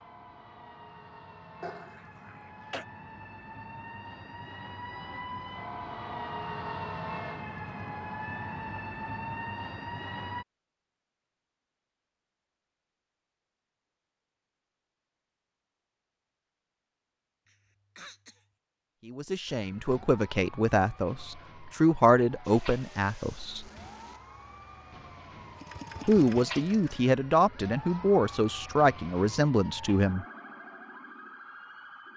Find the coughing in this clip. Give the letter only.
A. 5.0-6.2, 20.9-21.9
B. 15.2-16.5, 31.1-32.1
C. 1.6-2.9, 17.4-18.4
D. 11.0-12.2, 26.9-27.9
C.